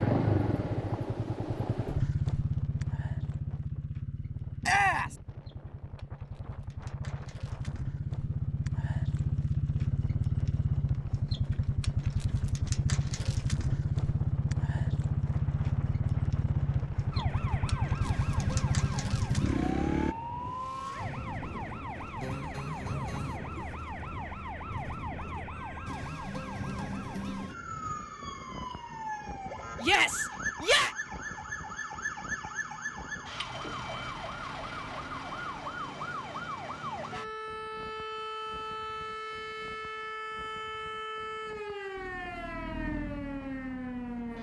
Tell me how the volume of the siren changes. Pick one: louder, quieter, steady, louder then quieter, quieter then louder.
steady.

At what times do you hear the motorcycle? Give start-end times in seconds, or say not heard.
0.0-20.1, 42.0-44.3.